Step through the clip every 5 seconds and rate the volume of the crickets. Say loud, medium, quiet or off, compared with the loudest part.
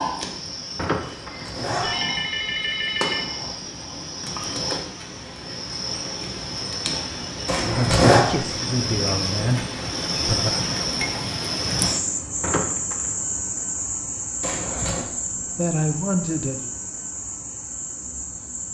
medium, loud, loud, medium.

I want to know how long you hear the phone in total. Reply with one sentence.
The phone can be heard for 3 seconds in total.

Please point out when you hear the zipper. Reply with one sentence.
You can hear the zipper from 1.2 to 1.9 s, from 7.5 to 8.2 s and from 14.4 to 15.1 s.